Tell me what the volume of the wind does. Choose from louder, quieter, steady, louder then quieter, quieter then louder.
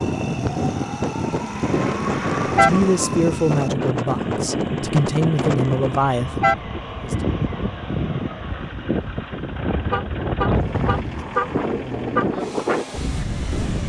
steady.